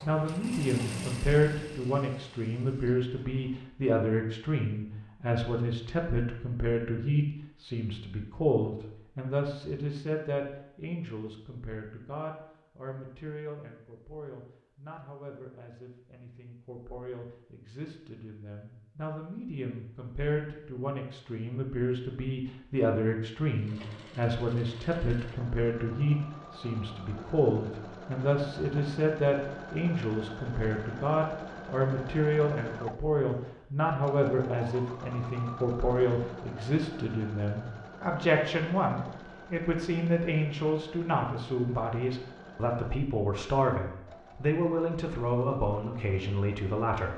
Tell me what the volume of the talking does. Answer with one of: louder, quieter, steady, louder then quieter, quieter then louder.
quieter then louder.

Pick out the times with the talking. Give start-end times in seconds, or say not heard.
0.0-47.1.